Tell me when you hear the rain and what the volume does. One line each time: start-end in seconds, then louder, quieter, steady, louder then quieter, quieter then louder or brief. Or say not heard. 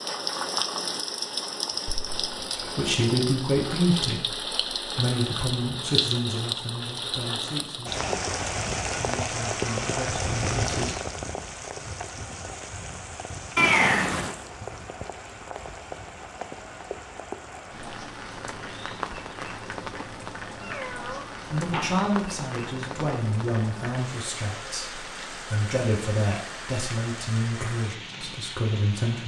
0.0-29.2 quieter.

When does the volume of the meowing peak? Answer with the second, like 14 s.
14 s.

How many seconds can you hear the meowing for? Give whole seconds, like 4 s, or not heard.
3 s.